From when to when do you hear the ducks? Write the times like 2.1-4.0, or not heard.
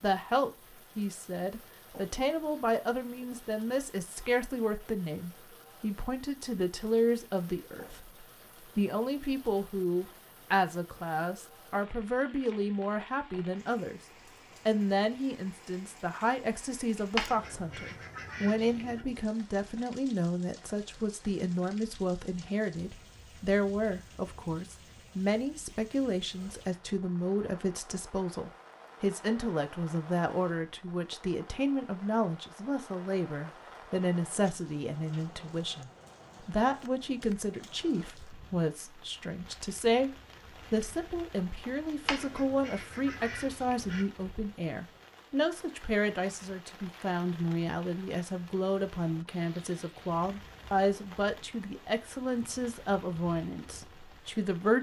17.1-19.0, 42.0-44.0.